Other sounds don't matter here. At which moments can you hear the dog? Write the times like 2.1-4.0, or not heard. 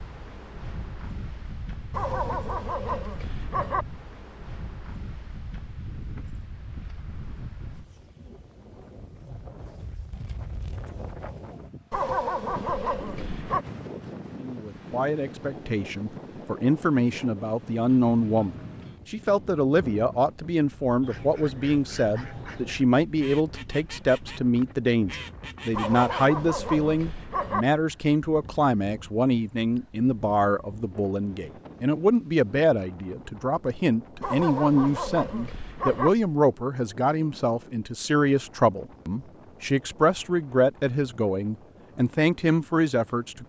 1.9-3.9, 11.9-13.7, 25.7-27.6, 34.2-36.1.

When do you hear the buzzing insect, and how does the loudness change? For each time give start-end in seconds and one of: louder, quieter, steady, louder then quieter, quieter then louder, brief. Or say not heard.
not heard.